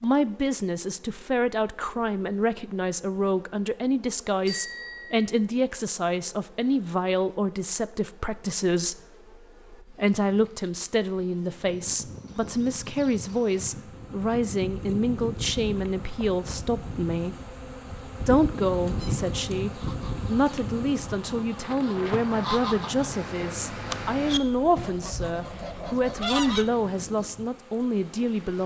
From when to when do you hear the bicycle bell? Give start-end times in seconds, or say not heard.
4.5-5.2.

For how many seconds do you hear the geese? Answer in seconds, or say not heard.
8 s.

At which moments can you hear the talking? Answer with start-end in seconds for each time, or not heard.
0.0-8.9, 9.8-17.4, 18.2-28.6.